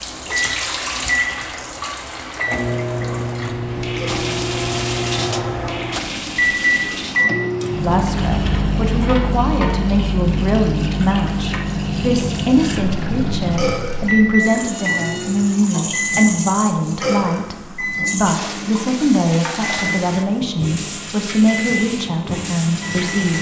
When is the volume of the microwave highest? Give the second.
7 s.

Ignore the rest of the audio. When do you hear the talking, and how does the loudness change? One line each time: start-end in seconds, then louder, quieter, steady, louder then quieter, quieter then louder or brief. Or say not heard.
7.8-23.3 steady.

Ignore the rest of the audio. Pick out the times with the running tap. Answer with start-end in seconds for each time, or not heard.
0.0-23.3.